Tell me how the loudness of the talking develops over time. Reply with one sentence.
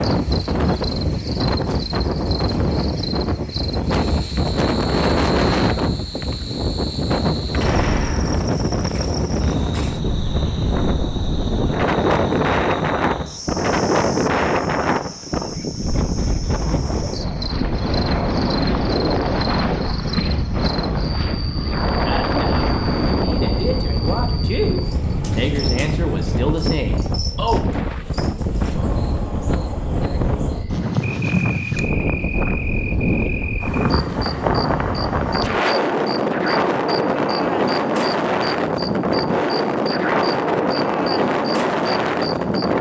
The loudness of the talking goes up.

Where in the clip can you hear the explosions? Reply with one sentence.
You can hear the explosions from 7.6 to 8.5 s.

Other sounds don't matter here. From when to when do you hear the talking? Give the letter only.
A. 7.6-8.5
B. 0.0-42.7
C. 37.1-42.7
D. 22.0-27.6
D.